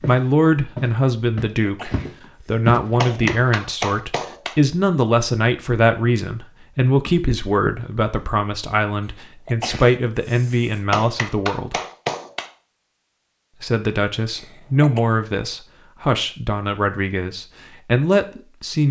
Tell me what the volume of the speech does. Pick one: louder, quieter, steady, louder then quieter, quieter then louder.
steady.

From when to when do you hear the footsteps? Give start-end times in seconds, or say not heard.
0.0-3.3.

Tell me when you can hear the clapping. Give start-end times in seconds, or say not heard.
3.0-4.5, 10.9-12.4.